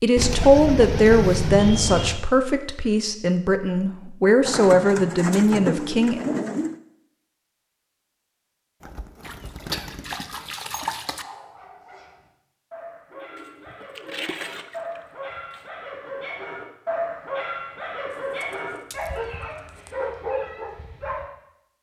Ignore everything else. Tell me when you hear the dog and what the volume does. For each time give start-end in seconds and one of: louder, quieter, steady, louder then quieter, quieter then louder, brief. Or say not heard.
11.2-21.2 louder.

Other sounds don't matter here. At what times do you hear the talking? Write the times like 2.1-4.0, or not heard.
0.0-6.2.